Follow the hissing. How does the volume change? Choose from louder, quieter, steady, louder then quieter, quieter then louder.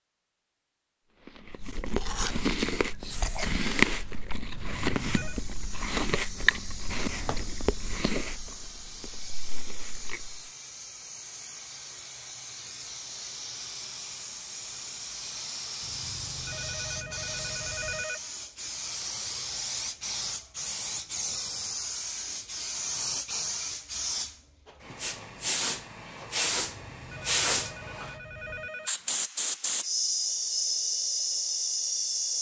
louder.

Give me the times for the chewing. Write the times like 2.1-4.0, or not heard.
1.1-10.4.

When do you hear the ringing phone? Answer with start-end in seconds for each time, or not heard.
4.5-5.4, 15.8-18.2, 26.4-28.9.